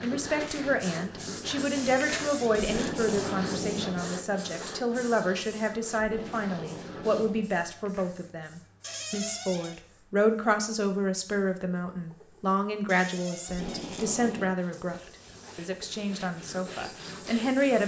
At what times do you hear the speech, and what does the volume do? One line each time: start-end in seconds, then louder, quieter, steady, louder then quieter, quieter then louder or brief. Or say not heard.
0.0-17.8 steady.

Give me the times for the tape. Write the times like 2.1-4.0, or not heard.
2.5-4.1, 6.0-7.5, 13.4-14.6.